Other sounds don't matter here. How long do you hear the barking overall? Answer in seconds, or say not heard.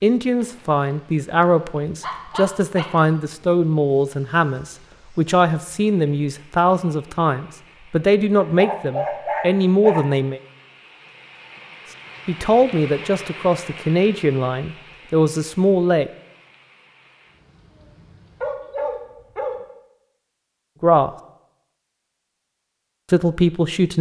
4 s.